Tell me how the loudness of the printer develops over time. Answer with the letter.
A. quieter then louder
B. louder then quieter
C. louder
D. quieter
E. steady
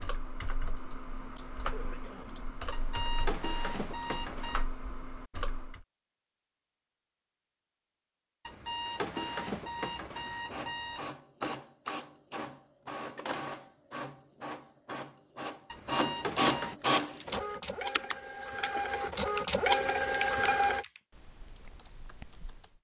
C.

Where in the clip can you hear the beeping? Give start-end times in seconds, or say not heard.
2.7-4.7, 8.4-11.1, 15.7-16.8.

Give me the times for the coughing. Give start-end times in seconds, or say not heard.
1.6-2.4.